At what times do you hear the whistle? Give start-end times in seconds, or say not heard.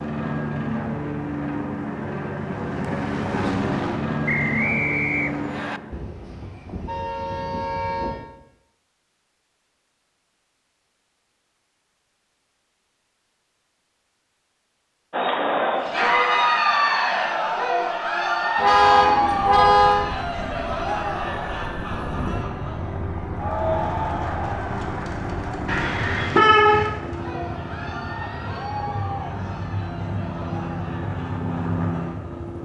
4.2-5.8.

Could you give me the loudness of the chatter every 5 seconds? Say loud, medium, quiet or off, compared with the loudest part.
off, off, off, loud, medium, quiet, quiet.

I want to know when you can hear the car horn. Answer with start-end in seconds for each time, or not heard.
5.9-8.2, 18.6-20.1, 25.6-26.9.